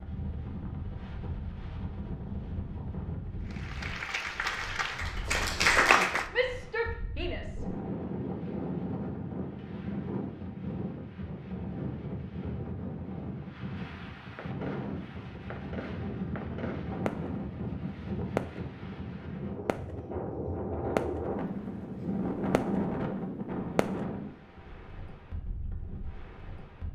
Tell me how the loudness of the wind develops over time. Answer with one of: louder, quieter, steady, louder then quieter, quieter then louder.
louder.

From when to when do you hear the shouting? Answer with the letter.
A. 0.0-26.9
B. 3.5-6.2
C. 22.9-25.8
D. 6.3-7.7
D.